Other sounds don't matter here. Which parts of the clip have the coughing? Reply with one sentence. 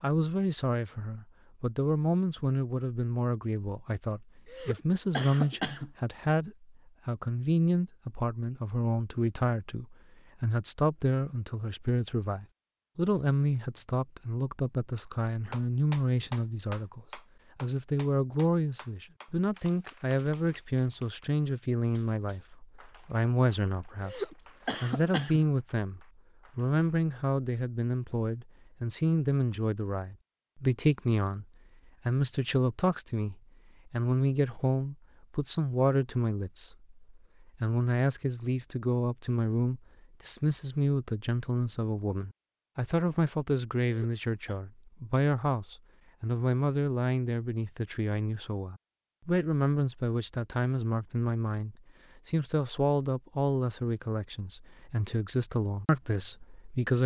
You can hear the coughing from 4.5 to 5.9 s, from 24.0 to 25.4 s and from 43.8 to 44.6 s.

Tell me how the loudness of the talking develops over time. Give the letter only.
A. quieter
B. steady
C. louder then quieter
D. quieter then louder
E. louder
B.